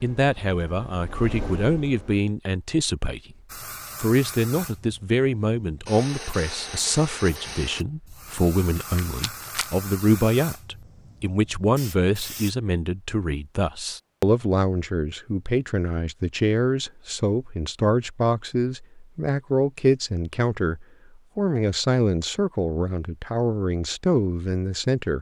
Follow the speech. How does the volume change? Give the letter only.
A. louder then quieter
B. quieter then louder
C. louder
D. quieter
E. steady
E.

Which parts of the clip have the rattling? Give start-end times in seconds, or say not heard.
8.8-9.7.